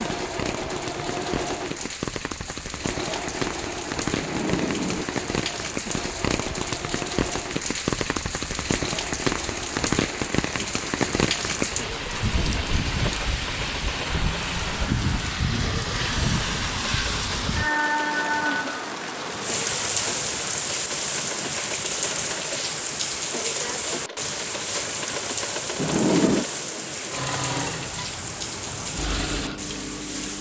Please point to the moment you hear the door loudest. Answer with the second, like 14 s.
26 s.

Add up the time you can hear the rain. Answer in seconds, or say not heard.
30 s.